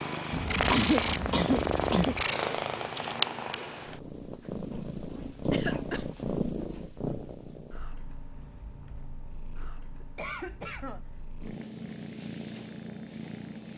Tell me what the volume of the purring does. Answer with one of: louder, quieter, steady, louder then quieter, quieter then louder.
quieter then louder.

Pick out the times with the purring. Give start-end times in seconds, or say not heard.
0.0-13.7.